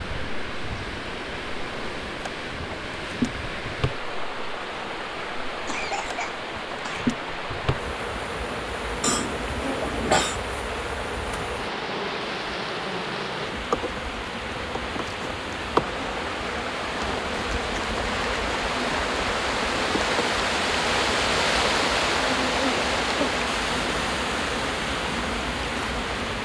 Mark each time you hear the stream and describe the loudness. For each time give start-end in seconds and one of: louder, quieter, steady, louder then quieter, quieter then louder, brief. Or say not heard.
0.0-26.4 louder.